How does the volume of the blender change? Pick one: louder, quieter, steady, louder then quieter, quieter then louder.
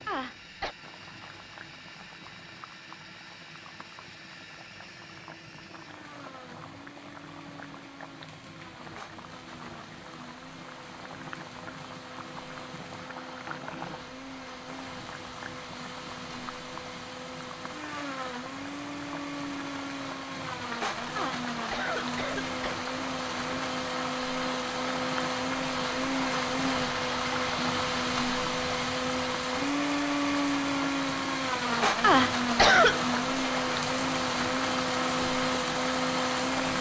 louder.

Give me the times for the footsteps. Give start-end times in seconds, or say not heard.
not heard.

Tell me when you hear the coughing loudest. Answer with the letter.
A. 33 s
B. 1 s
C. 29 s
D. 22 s
A.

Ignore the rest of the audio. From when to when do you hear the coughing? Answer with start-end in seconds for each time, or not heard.
0.1-0.8, 21.1-22.8, 32.0-33.0.